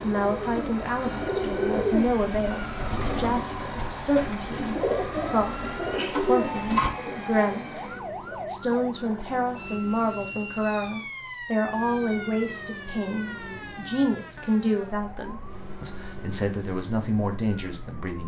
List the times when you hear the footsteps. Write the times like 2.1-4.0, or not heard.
not heard.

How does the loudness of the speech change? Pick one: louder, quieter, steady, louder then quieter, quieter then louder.
steady.